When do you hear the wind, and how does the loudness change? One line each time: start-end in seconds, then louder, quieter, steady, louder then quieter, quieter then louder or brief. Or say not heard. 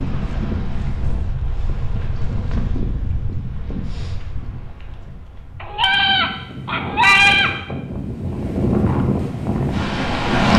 0.0-10.5 quieter then louder.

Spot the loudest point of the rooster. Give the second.
7 s.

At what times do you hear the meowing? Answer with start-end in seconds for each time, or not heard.
not heard.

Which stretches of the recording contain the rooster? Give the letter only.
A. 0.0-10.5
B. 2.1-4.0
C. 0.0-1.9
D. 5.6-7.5
D.